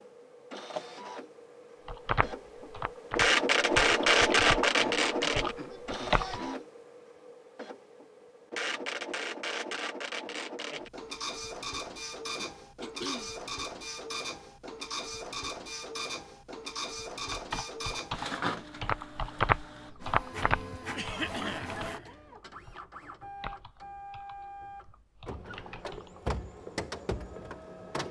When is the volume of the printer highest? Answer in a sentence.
The volume of the printer peaks at 4 seconds.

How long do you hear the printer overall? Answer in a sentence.
The printer can be heard for 28 seconds in total.